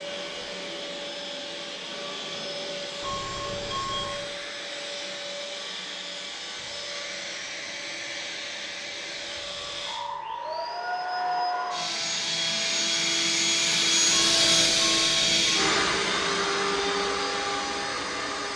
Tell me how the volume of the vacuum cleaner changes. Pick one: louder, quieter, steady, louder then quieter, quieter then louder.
louder.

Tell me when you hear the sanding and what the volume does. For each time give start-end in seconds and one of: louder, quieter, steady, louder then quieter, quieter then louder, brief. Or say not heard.
not heard.